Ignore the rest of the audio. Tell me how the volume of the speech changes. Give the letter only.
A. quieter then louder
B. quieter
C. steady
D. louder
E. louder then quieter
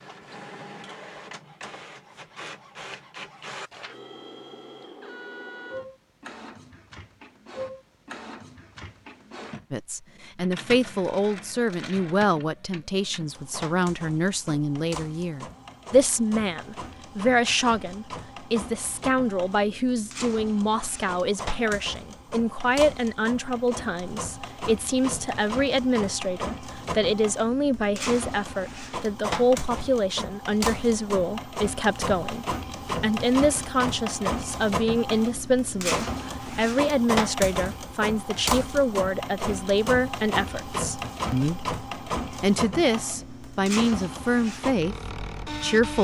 C.